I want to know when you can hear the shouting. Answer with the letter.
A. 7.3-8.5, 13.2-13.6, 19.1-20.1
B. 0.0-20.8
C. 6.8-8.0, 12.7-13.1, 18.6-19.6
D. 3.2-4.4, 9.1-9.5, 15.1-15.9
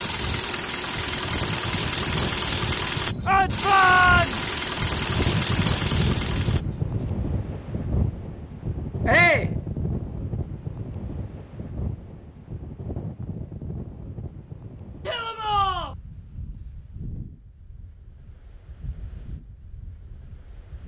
D.